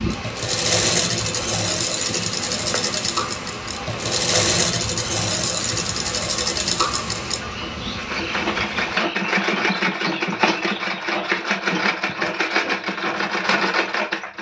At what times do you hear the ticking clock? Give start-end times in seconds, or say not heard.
not heard.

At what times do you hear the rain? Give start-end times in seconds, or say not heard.
0.0-9.0.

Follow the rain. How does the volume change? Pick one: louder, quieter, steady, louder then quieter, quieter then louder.
steady.